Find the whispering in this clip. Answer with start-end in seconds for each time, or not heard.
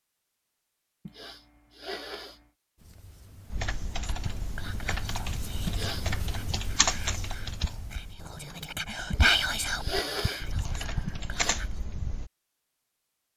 4.0-11.8.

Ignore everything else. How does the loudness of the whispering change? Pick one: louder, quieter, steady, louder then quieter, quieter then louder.
louder then quieter.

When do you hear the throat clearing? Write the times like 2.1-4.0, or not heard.
1.1-2.5, 5.7-6.2, 9.1-11.6.